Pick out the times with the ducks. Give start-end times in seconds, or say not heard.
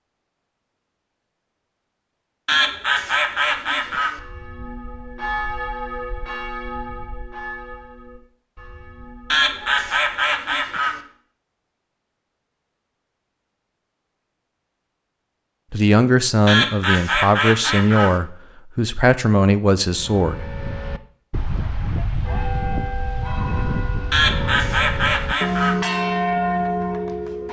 2.5-4.2, 9.3-11.0, 16.4-18.1, 24.1-25.8.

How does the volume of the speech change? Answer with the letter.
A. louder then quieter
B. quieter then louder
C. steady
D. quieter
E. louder
C.